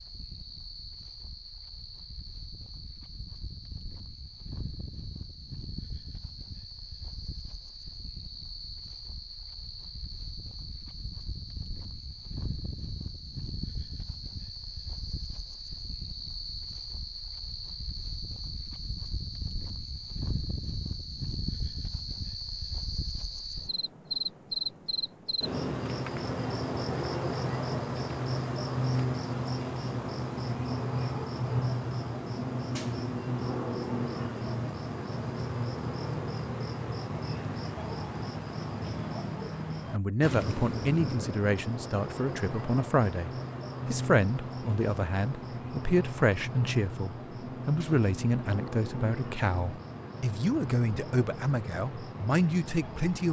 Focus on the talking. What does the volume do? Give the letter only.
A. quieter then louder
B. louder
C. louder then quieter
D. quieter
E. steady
E.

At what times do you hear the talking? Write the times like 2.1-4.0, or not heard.
39.9-53.2.